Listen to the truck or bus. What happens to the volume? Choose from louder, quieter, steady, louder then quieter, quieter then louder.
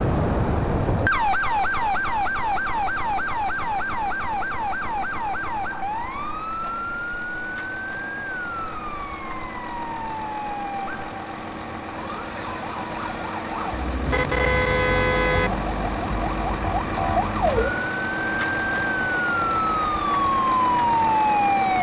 louder.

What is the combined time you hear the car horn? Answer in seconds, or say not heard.
2 s.